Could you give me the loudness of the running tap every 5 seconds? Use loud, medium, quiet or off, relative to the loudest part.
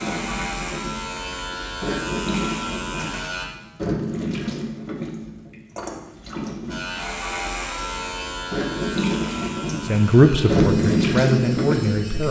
medium, medium, loud.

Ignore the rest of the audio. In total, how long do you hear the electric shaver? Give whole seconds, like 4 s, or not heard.
9 s.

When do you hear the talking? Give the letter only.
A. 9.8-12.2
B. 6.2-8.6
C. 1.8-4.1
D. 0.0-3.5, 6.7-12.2
A.